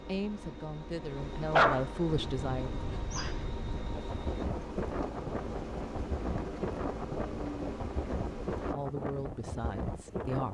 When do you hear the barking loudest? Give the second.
2 s.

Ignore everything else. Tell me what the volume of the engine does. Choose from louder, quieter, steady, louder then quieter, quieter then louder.
steady.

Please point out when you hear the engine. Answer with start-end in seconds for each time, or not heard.
0.0-8.8.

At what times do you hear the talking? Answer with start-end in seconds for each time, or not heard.
0.1-2.8, 8.7-10.4.